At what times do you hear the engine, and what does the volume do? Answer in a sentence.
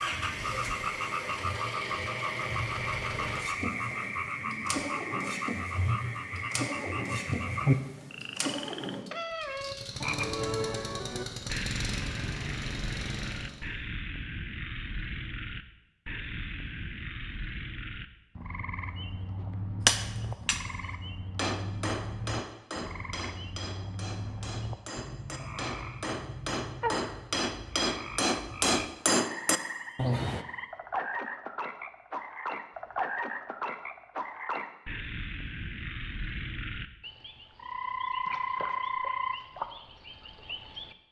You can hear the engine from 0.0 to 13.7 s, at a steady volume.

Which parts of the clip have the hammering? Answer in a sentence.
You can hear the hammering from 19.9 to 30.4 s.